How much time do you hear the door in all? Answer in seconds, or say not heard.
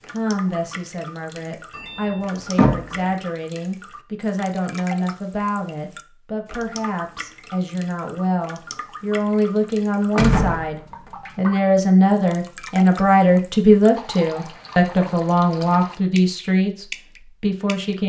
2 s.